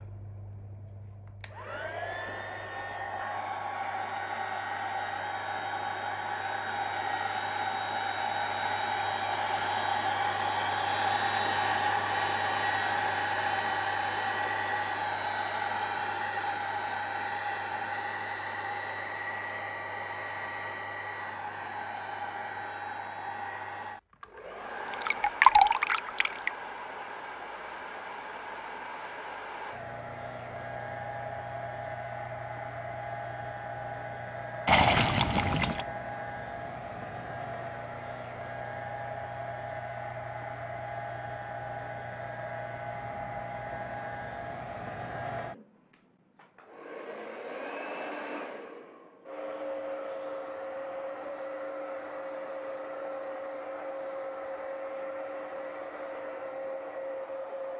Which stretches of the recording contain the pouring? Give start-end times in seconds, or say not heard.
24.9-26.5, 34.6-35.9.